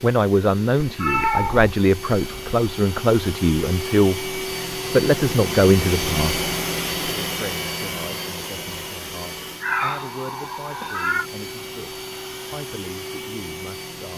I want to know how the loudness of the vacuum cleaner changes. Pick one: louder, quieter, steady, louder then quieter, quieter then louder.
louder then quieter.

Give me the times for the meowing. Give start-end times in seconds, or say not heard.
0.8-2.5, 9.6-11.3.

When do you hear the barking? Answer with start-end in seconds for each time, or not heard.
not heard.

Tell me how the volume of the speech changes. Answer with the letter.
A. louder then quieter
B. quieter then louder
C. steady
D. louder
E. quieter
E.